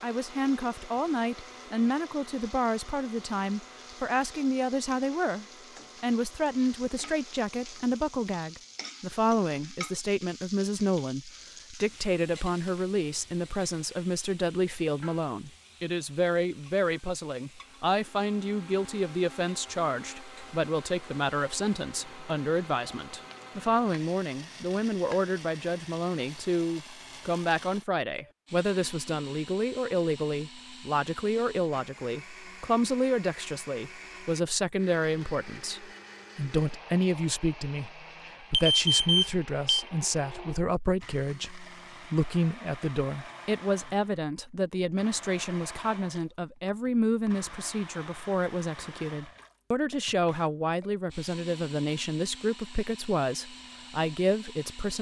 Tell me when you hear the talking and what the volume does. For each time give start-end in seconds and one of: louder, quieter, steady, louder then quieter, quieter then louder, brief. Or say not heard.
0.0-54.9 steady.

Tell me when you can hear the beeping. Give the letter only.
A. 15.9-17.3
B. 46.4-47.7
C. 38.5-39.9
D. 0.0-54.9
C.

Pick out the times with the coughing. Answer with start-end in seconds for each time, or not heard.
not heard.